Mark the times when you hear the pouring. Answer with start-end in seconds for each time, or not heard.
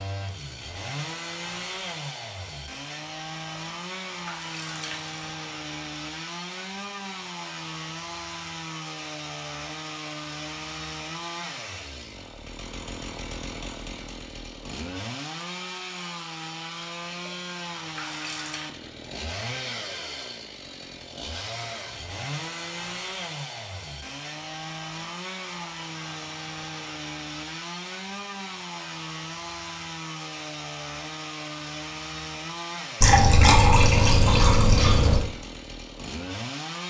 3.5-5.2, 17.1-18.7, 33.0-35.2.